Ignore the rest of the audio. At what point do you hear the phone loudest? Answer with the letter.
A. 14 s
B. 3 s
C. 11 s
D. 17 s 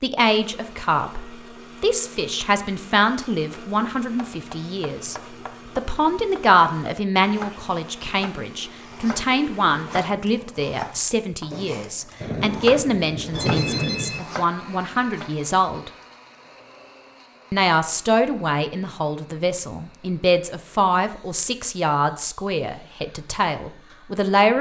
A.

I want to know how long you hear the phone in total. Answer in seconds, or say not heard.
2 s.